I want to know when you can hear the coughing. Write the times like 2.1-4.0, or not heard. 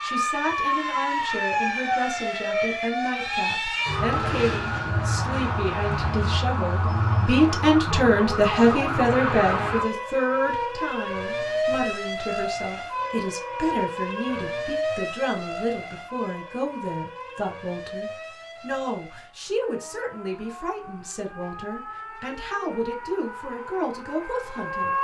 not heard.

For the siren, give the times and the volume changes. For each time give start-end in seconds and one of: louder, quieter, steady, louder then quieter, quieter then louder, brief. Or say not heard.
0.0-24.9 quieter.